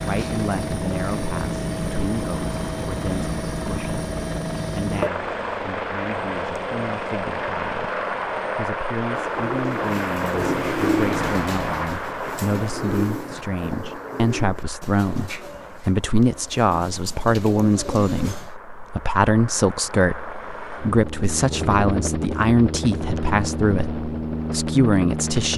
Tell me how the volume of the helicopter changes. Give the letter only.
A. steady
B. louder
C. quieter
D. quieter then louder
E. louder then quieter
D.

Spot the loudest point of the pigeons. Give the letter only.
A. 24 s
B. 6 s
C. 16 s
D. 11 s
D.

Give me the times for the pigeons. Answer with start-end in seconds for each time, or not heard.
9.1-18.5.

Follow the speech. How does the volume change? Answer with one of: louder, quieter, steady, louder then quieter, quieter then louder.
louder.